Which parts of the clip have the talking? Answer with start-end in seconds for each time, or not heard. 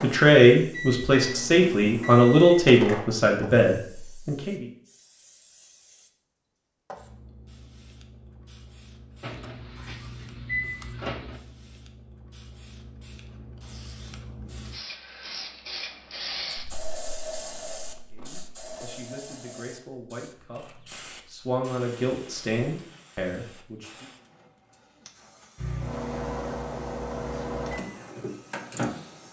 0.0-4.7, 18.1-24.1.